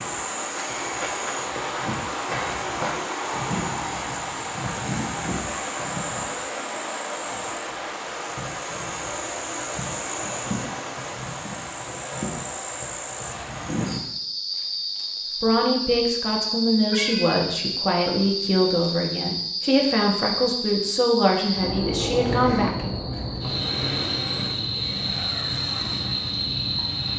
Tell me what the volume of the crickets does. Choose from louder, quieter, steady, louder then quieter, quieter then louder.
steady.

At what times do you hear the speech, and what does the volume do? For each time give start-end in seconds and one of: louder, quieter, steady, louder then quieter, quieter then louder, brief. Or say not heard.
15.4-22.9 steady.